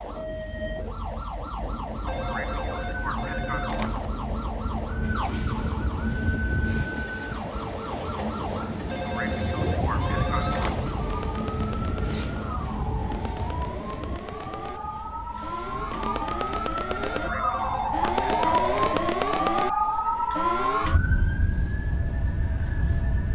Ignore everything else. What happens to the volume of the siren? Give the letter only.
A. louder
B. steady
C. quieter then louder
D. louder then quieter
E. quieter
A.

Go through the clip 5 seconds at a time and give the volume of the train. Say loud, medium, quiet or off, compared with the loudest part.
medium, loud, loud, medium, quiet.